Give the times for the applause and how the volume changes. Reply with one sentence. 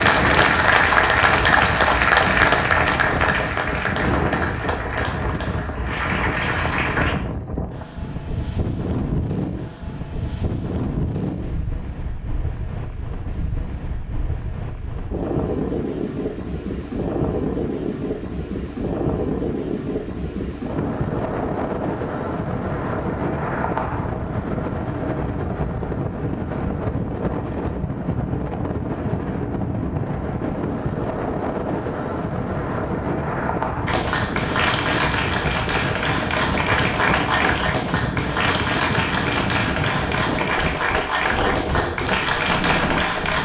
You can hear the applause from 0.0 to 7.2 s, getting quieter; and from 33.9 to 43.3 s, at a steady volume.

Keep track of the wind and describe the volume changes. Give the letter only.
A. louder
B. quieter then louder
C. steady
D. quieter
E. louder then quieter
C.